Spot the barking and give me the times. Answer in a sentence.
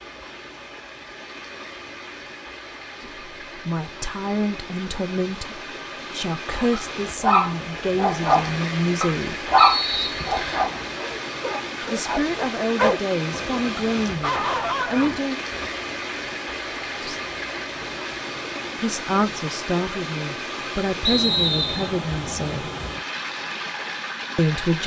You can hear the barking from 6.5 to 15.7 s.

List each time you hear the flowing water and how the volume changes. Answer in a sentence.
You can hear the flowing water from 0.0 to 24.8 s, getting louder.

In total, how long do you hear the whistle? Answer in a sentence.
You can hear the whistle for 2 seconds altogether.